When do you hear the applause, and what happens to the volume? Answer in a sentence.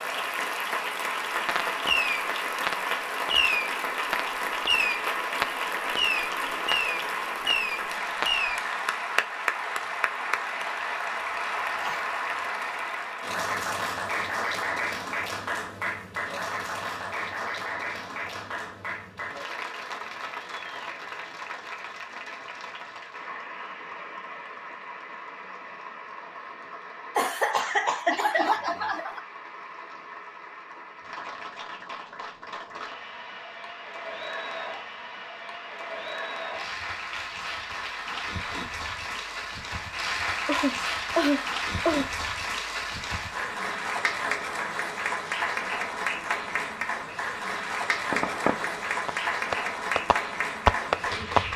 You can hear the applause from 0.0 to 51.5 s, getting quieter then louder.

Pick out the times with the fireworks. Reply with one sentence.
The fireworks can be heard from 1.4 to 8.6 s and from 48.1 to 51.4 s.